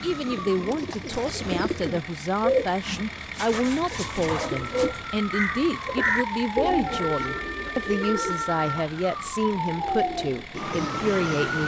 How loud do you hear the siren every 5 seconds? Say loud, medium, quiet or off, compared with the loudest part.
medium, loud, loud.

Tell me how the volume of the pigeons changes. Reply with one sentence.
The volume of the pigeons goes down.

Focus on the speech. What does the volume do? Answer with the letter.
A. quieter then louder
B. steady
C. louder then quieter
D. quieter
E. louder
B.